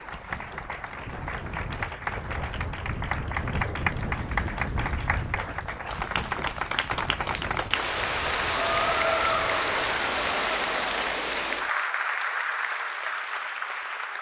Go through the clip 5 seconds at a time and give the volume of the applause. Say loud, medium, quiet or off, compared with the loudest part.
medium, loud, loud.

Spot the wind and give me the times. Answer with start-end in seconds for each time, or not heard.
0.0-10.2.